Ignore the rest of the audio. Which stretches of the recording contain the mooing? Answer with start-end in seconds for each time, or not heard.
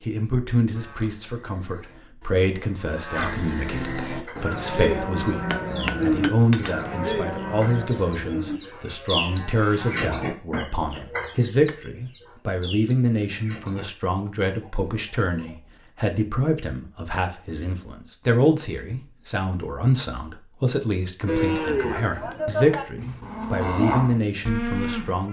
0.7-10.0, 21.2-25.2.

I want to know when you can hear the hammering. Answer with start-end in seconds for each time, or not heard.
5.5-6.9.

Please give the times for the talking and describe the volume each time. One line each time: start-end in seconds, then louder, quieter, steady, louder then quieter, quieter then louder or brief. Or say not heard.
0.0-25.2 steady.